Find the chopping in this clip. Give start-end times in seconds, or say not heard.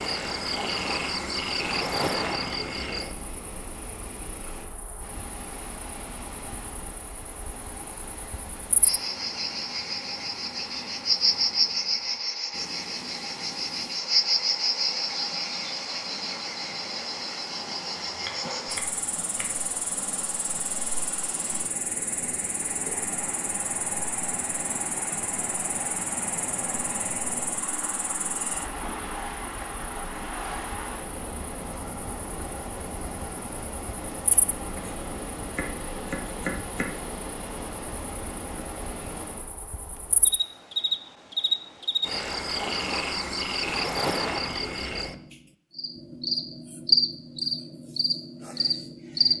18.1-19.5, 34.3-37.0.